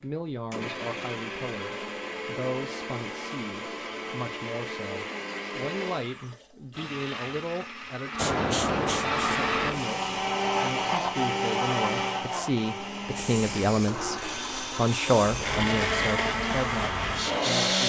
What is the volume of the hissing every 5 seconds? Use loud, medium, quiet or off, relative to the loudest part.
off, loud, medium, loud.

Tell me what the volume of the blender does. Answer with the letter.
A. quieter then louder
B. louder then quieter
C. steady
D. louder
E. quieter
D.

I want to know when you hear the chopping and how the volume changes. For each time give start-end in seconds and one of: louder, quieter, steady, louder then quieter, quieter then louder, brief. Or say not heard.
not heard.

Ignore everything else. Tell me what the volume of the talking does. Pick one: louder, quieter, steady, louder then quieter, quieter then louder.
louder.